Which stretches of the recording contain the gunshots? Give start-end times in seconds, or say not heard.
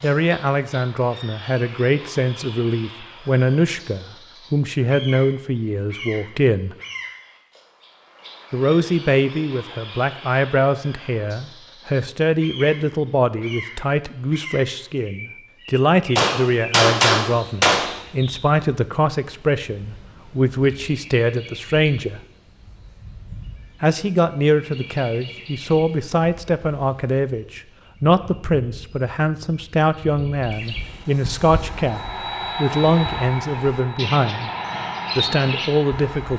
16.1-17.9.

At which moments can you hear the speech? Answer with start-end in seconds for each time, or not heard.
0.0-6.8, 8.5-22.2, 23.8-34.5, 35.1-36.3.